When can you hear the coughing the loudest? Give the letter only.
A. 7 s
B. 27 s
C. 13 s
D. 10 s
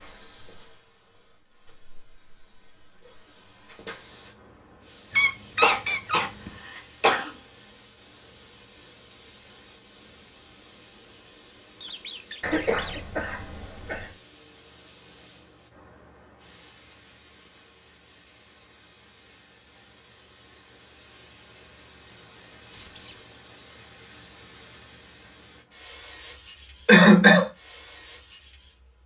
B.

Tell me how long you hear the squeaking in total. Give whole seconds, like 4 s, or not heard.
3 s.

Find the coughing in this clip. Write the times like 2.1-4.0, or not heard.
5.6-7.3, 12.4-14.1, 26.9-27.4.